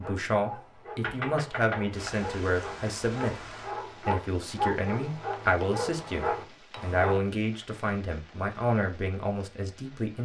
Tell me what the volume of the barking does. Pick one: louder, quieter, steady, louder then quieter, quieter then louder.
louder.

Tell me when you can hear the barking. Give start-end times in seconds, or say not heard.
0.0-7.2.